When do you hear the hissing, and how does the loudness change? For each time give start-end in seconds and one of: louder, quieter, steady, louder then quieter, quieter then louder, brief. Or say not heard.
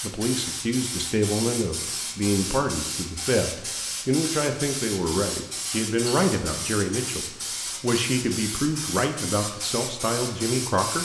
0.0-11.0 steady.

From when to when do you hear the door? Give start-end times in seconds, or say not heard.
not heard.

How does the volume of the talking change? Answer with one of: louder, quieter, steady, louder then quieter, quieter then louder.
steady.